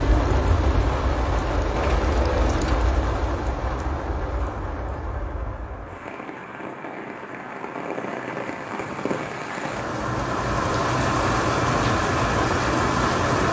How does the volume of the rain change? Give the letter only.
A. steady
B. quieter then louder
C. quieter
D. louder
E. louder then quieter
B.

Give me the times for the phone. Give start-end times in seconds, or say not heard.
not heard.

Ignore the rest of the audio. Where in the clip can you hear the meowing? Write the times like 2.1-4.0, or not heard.
1.7-2.9.